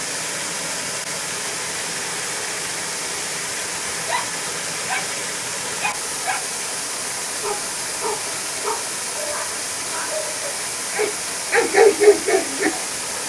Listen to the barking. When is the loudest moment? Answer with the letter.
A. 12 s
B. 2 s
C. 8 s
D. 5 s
A.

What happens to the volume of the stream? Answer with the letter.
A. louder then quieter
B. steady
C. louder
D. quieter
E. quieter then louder
B.